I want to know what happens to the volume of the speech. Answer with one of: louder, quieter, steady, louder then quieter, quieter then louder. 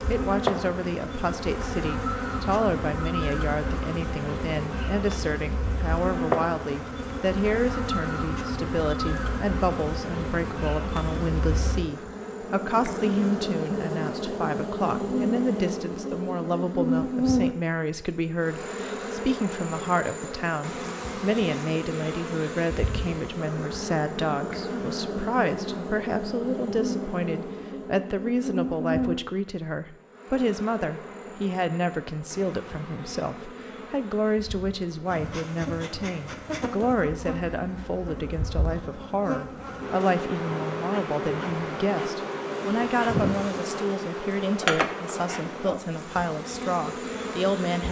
steady.